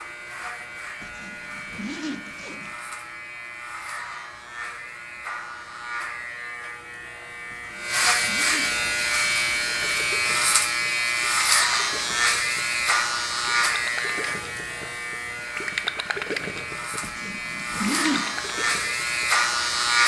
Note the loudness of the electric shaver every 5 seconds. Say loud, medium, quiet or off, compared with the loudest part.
quiet, loud, loud, loud.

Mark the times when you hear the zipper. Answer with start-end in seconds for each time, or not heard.
1.0-2.8, 7.5-8.8, 17.0-18.4.